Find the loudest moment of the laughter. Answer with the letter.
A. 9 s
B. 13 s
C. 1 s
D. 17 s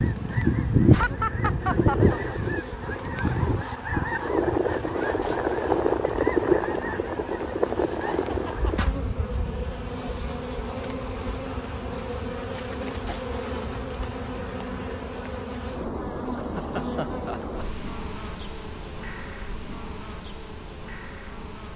C.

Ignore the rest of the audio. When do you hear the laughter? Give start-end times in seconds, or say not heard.
0.9-2.1, 7.9-8.9, 16.4-17.6.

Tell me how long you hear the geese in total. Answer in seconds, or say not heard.
9 s.